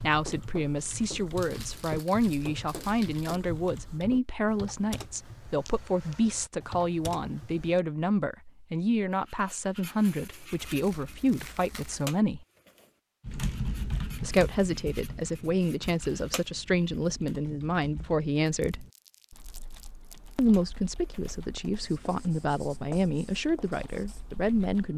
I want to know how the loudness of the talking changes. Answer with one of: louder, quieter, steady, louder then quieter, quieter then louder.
steady.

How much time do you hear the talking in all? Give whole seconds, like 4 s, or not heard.
22 s.